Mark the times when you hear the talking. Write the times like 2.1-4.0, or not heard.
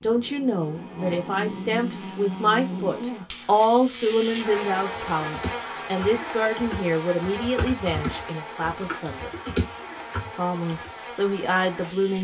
0.0-9.3, 10.3-12.1.